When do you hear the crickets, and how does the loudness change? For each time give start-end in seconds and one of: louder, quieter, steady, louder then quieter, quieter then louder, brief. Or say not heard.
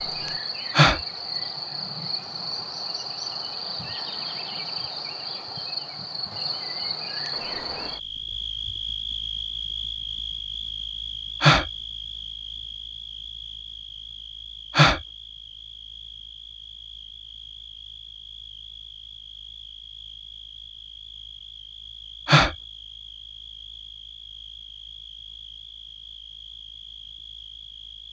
0.0-28.0 quieter.